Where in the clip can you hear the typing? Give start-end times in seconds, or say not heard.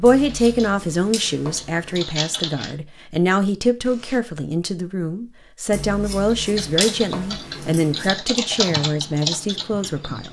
0.1-2.8, 6.3-10.2.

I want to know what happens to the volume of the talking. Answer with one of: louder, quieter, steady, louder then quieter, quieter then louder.
steady.